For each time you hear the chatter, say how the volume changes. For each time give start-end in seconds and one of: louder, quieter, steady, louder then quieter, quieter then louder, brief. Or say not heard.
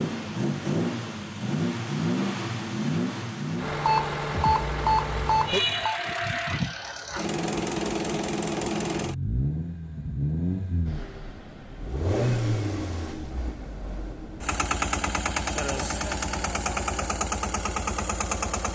not heard.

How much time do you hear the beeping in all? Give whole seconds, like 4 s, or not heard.
2 s.